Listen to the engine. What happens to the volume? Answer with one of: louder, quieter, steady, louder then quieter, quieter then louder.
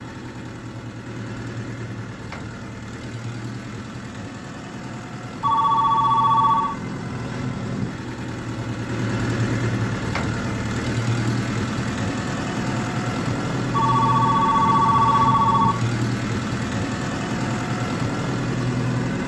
louder.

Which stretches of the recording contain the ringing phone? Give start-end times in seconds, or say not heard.
5.4-6.8, 13.7-15.8.